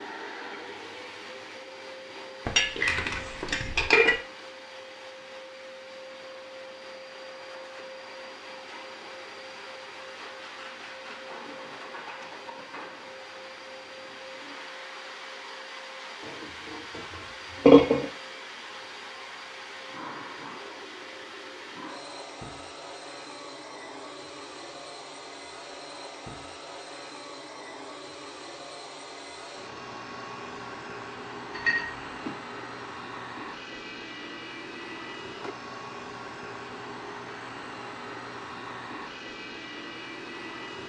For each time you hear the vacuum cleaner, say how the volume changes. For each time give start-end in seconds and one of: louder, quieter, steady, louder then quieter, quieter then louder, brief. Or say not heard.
0.0-40.8 steady.